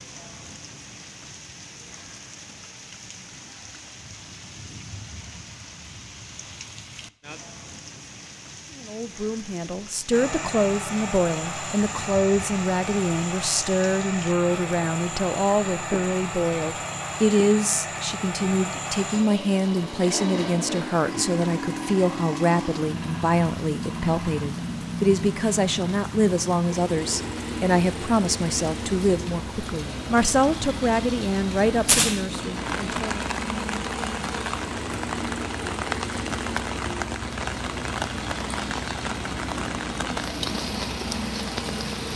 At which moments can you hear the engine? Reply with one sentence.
The engine can be heard from 10.1 to 42.1 s.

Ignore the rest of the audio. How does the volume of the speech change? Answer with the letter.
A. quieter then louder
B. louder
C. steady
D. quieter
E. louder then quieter
C.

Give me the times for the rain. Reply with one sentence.
You can hear the rain from 0.0 to 42.1 s.